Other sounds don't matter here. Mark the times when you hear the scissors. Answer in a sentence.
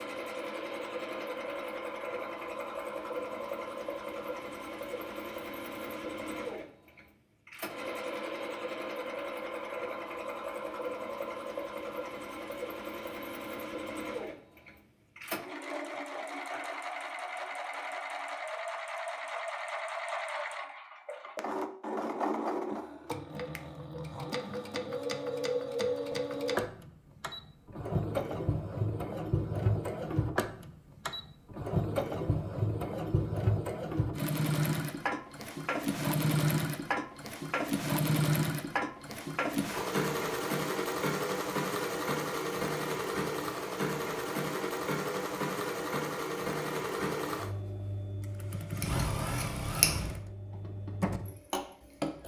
You can hear the scissors from 48.8 to 50.0 s.